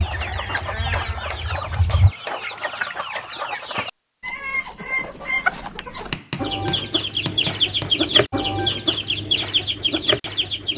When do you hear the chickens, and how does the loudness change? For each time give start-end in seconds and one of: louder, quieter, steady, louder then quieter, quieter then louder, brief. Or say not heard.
0.0-10.7 louder.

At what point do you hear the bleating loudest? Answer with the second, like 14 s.
2 s.